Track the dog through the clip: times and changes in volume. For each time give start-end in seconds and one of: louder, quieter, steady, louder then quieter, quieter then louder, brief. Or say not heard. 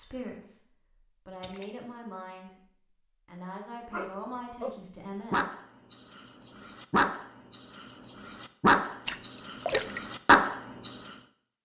3.9-11.1 quieter then louder.